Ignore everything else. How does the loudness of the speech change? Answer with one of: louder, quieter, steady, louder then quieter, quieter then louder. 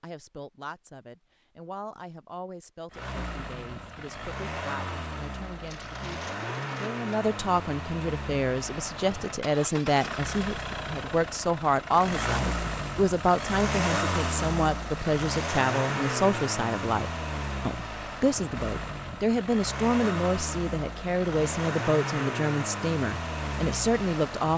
louder.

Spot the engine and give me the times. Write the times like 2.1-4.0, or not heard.
2.9-24.5.